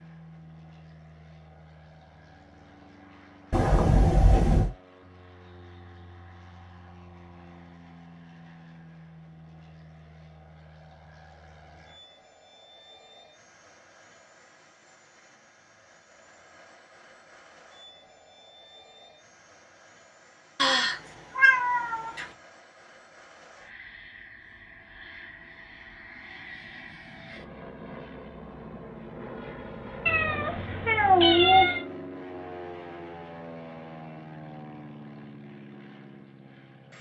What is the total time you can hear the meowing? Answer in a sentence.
You can hear the meowing for 5 seconds altogether.